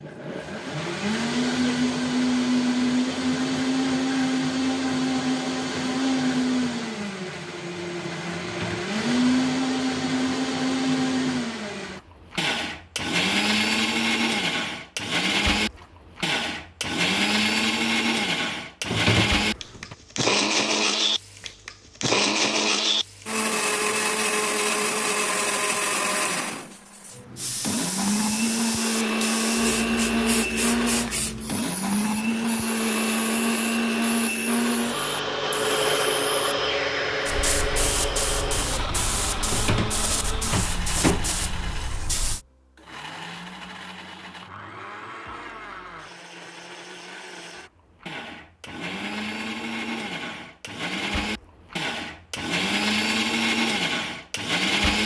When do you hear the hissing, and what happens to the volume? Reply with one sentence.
The hissing can be heard from 27.4 to 42.4 s, getting quieter then louder.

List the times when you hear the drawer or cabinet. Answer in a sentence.
You can hear the drawer or cabinet from 8.4 to 8.9 s, from 18.9 to 19.9 s and from 39.5 to 41.3 s.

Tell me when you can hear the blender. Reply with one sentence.
You can hear the blender from 0.0 to 55.0 s.